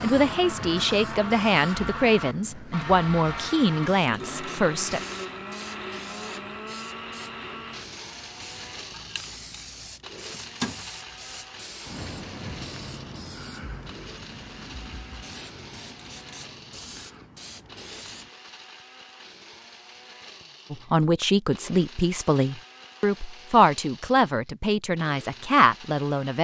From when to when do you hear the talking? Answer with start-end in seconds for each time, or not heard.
0.0-5.0, 20.7-26.4.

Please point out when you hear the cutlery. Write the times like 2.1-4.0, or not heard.
not heard.